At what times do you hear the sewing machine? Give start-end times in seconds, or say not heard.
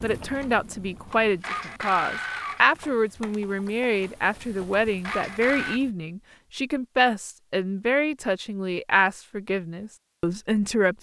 0.0-5.8.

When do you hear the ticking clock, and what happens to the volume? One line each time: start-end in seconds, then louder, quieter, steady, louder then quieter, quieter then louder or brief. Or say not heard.
not heard.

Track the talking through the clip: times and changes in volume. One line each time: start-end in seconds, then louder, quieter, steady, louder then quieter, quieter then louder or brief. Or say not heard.
0.0-10.9 steady.